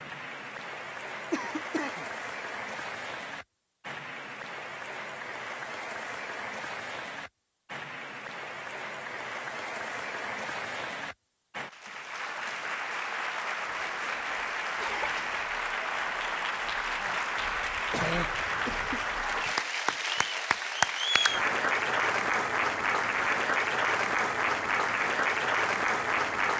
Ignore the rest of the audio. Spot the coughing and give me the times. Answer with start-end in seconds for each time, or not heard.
1.3-2.0, 14.8-15.3, 17.9-19.1.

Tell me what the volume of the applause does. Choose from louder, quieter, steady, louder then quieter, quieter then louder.
louder.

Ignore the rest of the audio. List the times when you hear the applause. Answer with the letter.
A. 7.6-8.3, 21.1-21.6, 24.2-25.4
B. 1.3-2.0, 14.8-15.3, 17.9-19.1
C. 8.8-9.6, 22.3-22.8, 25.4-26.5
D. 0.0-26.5
D.